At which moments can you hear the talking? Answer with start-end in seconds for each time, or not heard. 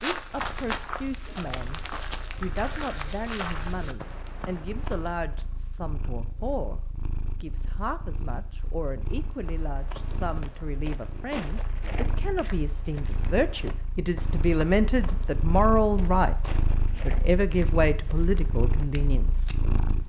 0.0-1.8, 2.4-6.8, 7.4-19.5.